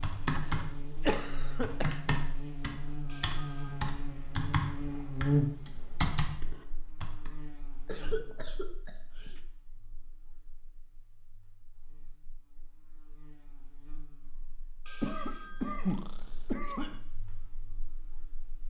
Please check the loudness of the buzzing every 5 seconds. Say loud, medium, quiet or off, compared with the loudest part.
medium, loud, quiet, quiet.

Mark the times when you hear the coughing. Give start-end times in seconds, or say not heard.
0.5-2.1, 7.8-9.4, 15.0-17.0.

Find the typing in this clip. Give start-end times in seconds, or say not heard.
0.0-7.3.